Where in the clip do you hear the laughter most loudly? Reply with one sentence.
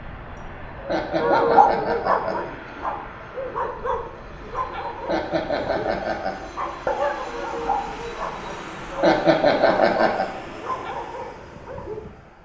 The loudest moment of the laughter is at 9 seconds.